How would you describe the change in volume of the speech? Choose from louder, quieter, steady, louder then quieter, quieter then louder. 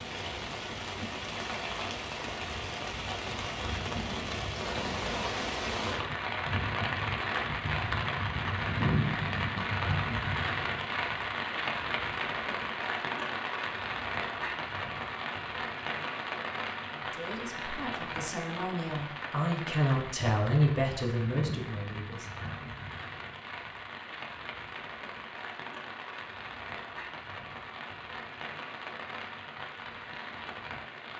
louder then quieter.